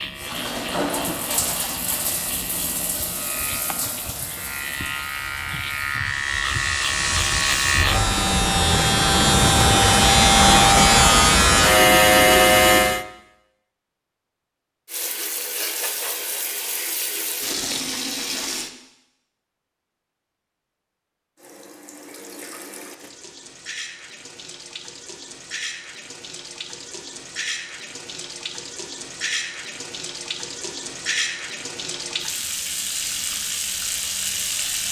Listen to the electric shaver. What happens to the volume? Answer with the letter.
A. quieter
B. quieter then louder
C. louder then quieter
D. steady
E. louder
E.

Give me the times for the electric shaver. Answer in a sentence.
You can hear the electric shaver from 0.0 to 13.1 s.